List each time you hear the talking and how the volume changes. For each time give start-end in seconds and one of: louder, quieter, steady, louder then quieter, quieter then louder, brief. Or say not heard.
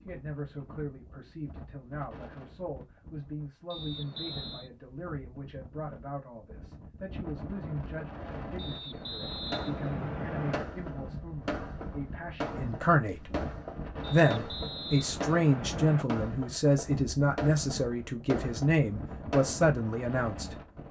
0.1-13.3 louder
14.1-20.6 steady.